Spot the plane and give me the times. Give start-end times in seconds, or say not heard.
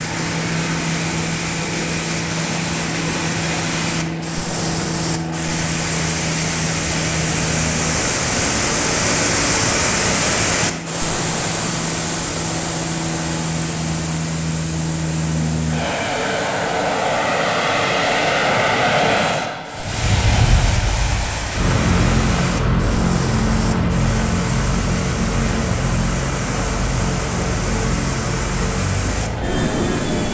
0.0-30.3.